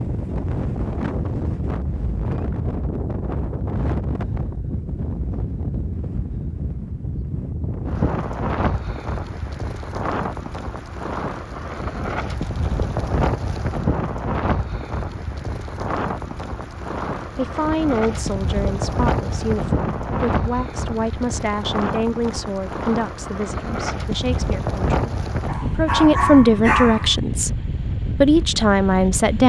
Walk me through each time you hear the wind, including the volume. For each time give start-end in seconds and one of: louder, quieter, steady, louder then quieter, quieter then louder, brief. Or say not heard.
0.0-29.4 steady.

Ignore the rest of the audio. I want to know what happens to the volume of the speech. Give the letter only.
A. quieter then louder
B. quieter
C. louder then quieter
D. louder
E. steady
D.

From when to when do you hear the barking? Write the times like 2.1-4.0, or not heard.
25.4-27.1.